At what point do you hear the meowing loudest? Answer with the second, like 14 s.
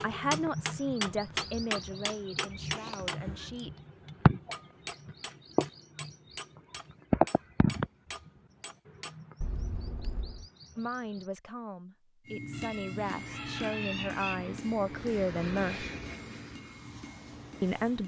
14 s.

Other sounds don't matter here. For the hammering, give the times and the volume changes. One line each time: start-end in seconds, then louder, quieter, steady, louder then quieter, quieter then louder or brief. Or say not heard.
0.0-9.2 quieter
12.2-18.0 quieter.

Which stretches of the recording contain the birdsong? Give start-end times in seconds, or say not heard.
0.0-11.2.